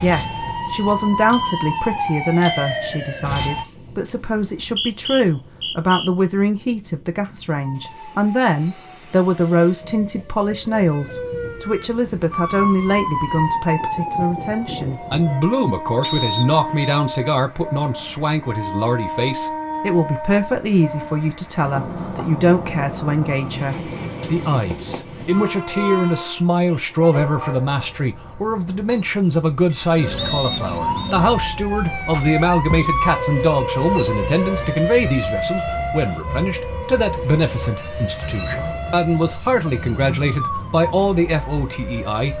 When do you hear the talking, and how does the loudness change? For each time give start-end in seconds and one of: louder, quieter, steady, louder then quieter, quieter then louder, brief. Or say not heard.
0.0-42.3 steady.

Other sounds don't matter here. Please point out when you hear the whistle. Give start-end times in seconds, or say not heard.
4.3-6.1, 16.0-16.9, 30.1-31.1.